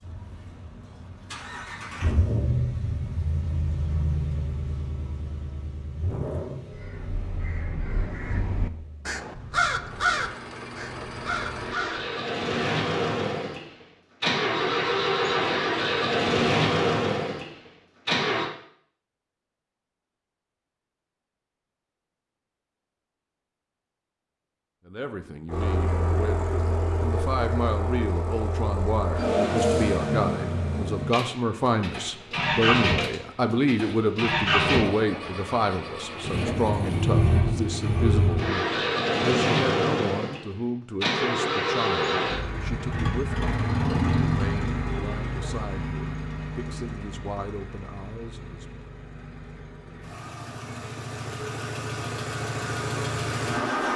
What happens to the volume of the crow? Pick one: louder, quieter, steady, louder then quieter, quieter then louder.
louder then quieter.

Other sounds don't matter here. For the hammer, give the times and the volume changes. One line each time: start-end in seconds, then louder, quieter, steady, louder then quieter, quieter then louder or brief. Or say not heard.
not heard.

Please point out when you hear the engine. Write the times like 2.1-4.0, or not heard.
0.0-18.5, 25.4-53.9.